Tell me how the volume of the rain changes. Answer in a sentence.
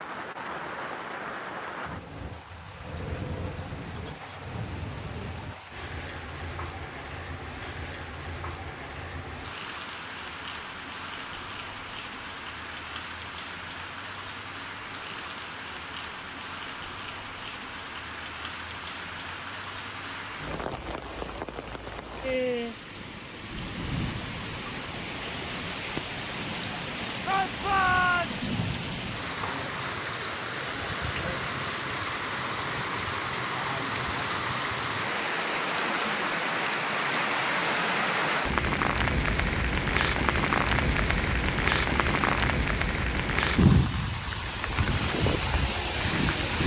The loudness of the rain goes up.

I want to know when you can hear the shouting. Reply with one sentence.
The shouting can be heard from 27.2 to 28.4 s.